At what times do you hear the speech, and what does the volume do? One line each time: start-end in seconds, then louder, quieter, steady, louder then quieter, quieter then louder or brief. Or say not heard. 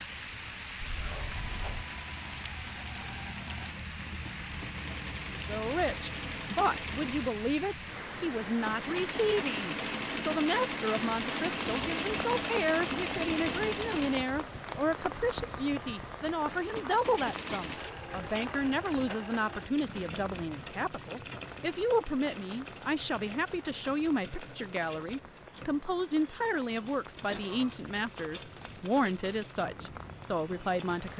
5.3-31.1 steady.